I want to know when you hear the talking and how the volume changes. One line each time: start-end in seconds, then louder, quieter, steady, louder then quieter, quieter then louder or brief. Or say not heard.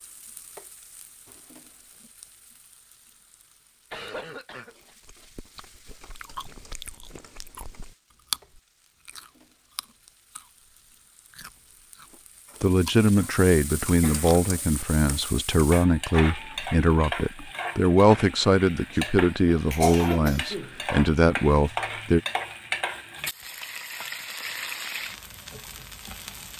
12.6-22.2 steady.